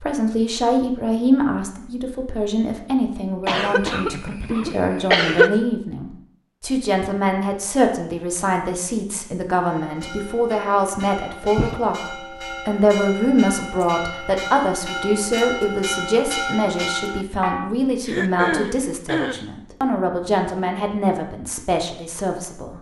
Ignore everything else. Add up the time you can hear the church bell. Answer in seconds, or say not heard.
8 s.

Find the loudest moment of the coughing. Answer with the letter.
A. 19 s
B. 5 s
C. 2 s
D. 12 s
B.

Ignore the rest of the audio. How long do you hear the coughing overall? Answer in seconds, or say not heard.
4 s.